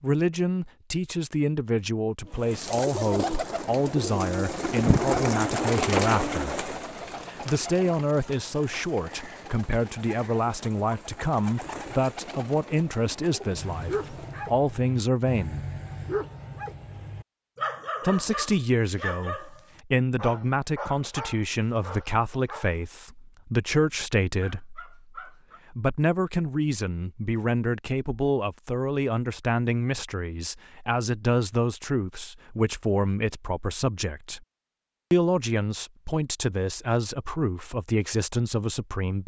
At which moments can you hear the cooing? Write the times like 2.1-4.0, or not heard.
2.2-14.5.